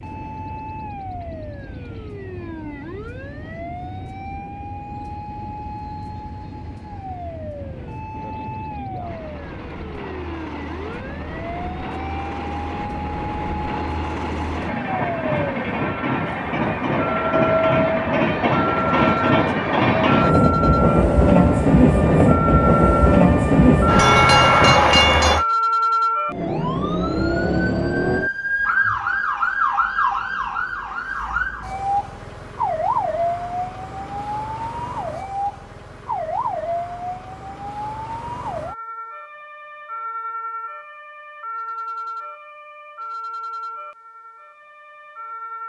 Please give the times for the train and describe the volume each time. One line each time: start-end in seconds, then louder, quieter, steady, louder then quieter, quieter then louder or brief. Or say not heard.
0.0-25.4 louder.